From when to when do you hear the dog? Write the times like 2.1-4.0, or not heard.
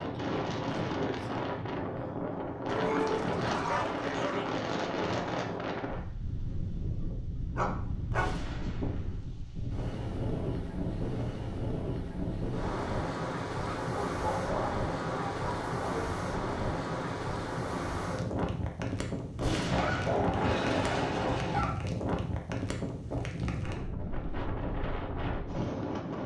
2.6-4.5, 7.5-8.3, 13.7-16.1, 19.7-21.8.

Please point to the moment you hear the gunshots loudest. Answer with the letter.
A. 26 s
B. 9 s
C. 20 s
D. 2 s
C.